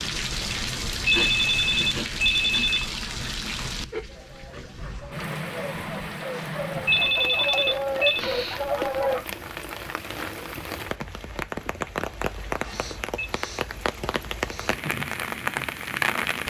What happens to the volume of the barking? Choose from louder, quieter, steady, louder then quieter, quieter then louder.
louder.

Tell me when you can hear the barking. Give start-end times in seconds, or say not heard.
3.9-9.2.